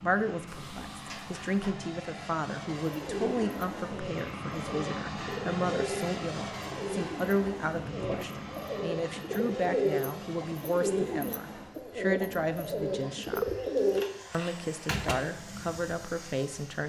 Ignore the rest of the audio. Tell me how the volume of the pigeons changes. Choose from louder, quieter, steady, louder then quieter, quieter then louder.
louder.